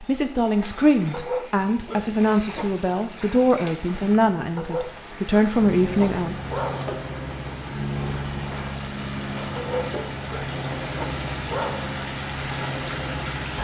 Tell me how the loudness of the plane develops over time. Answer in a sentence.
The volume of the plane goes up.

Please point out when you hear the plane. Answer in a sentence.
You can hear the plane from 1.6 to 13.5 s.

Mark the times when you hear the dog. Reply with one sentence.
The dog can be heard from 1.1 to 2.9 s, from 4.5 to 6.9 s and from 9.6 to 11.9 s.